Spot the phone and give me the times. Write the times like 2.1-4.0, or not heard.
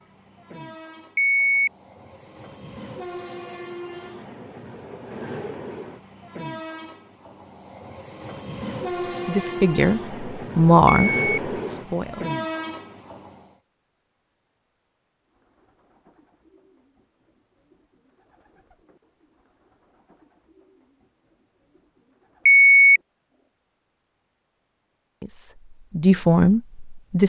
1.1-1.7, 10.8-11.4, 22.4-23.0.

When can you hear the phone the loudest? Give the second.
23 s.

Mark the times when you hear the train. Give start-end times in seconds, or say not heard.
0.0-13.5.